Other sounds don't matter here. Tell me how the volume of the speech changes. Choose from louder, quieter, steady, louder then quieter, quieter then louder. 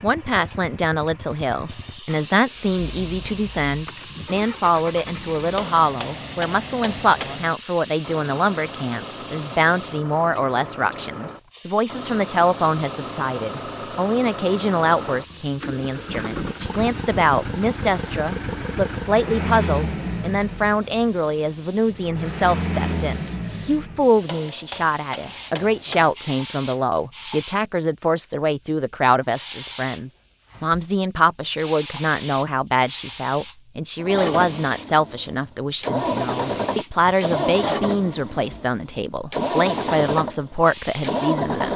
steady.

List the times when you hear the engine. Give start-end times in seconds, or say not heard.
0.0-24.3, 34.0-41.7.